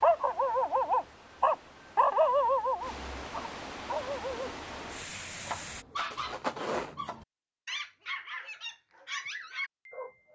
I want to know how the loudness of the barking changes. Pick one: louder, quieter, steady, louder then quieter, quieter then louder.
quieter.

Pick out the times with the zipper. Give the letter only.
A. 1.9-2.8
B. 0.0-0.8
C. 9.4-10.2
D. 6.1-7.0
D.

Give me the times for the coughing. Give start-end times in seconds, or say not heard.
not heard.